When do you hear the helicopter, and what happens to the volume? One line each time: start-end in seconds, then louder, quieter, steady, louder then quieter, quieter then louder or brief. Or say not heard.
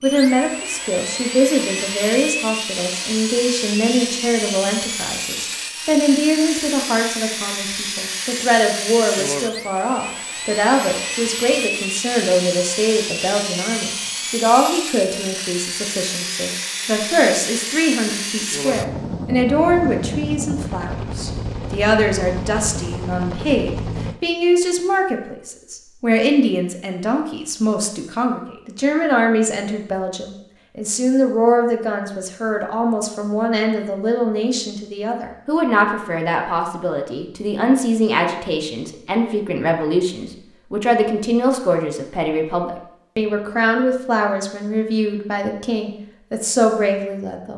0.0-24.2 steady.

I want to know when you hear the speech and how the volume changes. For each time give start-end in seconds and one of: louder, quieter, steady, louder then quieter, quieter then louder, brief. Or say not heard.
0.0-47.5 steady.